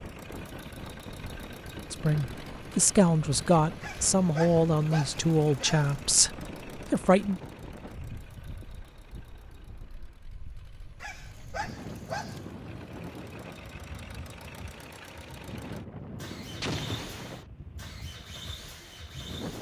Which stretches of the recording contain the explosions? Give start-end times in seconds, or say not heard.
16.6-17.4.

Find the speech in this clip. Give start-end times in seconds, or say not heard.
1.9-6.3, 6.9-7.4.